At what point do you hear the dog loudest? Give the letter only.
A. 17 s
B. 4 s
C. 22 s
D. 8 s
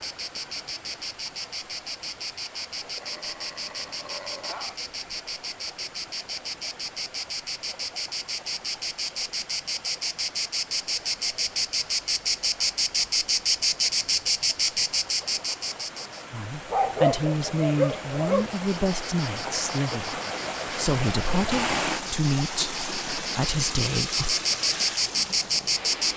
A.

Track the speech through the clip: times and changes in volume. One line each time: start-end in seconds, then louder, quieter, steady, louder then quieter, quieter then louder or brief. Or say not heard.
16.3-24.4 steady.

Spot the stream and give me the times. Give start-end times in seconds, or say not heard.
0.0-26.1.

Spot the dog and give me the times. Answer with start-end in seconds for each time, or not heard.
3.0-4.8, 16.7-18.5.